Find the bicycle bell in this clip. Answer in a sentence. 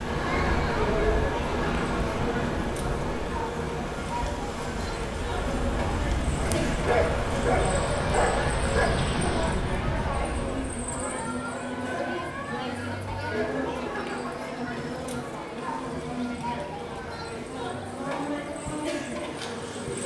You can't hear the bicycle bell here.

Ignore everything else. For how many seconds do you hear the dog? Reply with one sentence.
You can hear the dog for 3 seconds altogether.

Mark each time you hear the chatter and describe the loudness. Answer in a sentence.
You can hear the chatter from 0.0 to 20.0 s, at a steady volume.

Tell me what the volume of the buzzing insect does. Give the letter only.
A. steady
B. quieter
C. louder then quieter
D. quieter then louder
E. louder
A.